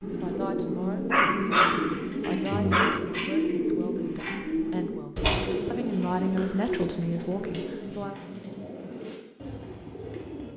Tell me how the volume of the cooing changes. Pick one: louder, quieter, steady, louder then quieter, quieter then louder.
quieter.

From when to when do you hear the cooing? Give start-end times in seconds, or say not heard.
0.0-10.5.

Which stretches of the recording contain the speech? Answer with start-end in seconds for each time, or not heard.
0.0-8.2.